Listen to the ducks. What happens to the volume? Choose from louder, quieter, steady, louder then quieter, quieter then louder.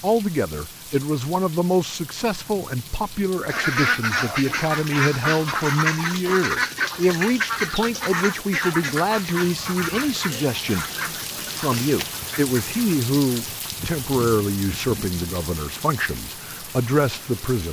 quieter.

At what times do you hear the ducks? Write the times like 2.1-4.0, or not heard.
3.5-12.8.